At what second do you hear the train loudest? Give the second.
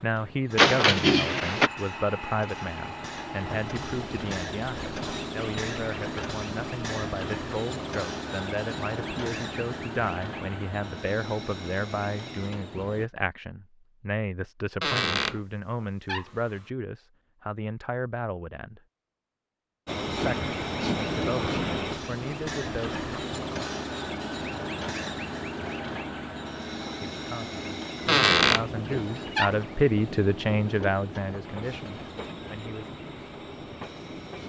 21 s.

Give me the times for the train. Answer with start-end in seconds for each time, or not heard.
0.0-13.1, 19.9-34.4.